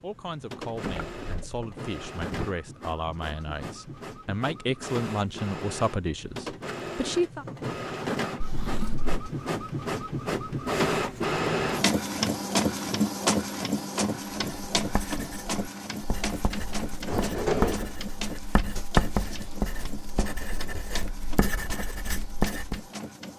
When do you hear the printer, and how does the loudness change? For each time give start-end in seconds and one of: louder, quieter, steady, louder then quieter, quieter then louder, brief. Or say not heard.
0.0-23.3 louder then quieter.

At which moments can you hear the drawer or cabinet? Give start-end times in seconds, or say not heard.
0.7-2.5, 8.4-9.2, 17.1-17.9.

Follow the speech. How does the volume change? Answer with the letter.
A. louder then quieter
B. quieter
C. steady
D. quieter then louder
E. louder
E.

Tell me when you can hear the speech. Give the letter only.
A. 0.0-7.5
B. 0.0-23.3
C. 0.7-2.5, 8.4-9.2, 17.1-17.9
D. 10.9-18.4
A.